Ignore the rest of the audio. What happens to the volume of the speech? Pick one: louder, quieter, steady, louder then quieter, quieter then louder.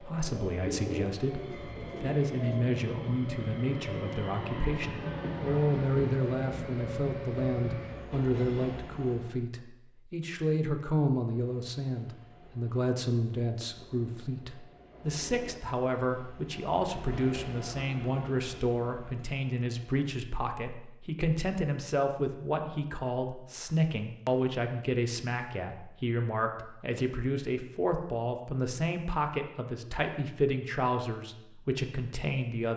steady.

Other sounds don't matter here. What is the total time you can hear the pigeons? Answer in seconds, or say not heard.
2 s.